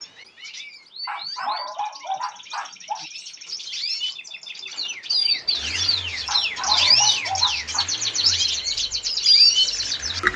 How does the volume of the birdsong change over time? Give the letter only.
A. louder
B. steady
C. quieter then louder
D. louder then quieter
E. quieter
A.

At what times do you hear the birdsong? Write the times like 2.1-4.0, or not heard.
0.0-10.3.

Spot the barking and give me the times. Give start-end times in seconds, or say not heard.
1.1-3.0, 6.2-7.8.